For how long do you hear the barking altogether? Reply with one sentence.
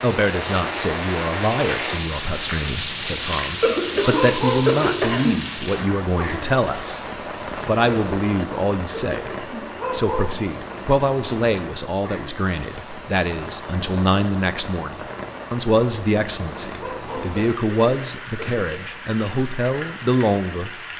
The barking can be heard for 2 seconds in total.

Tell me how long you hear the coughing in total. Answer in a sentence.
You can hear the coughing for 5 seconds altogether.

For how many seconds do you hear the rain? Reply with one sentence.
The rain can be heard for 21 seconds in total.